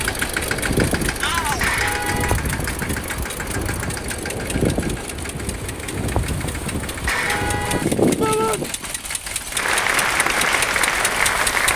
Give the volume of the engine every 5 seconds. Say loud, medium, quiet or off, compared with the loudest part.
loud, medium, loud.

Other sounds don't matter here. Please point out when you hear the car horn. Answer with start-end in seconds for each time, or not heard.
1.4-2.4, 6.9-7.8.